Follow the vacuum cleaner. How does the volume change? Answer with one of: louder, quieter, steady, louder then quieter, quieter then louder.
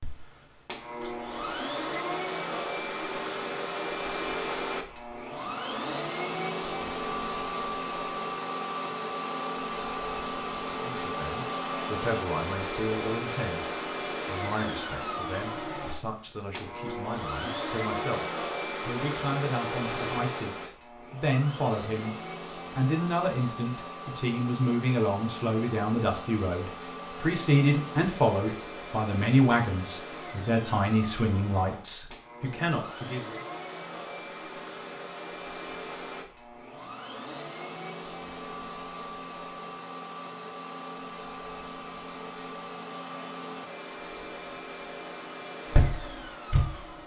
quieter.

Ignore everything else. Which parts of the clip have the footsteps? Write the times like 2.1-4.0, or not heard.
45.7-46.8.